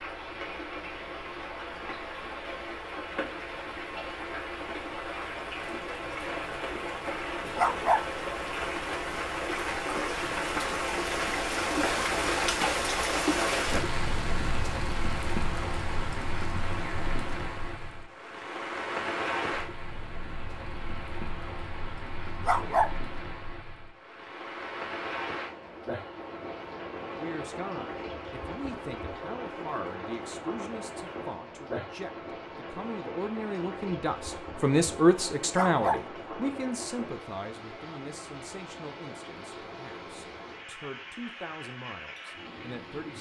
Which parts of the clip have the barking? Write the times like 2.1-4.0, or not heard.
7.5-8.1, 22.4-22.9, 35.5-36.0.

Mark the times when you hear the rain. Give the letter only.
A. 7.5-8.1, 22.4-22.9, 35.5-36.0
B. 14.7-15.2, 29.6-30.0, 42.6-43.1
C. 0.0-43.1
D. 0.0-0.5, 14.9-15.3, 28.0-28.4
C.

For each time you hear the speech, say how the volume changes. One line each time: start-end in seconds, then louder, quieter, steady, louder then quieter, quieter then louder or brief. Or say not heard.
27.1-43.1 louder then quieter.